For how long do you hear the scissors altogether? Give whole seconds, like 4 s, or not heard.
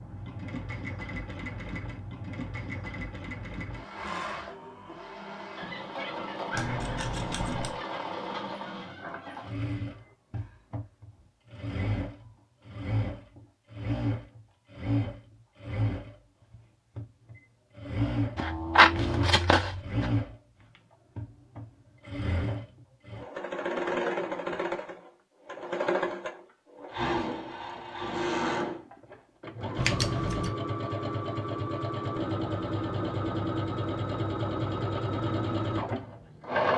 4 s.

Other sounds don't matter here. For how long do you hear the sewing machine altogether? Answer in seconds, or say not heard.
37 s.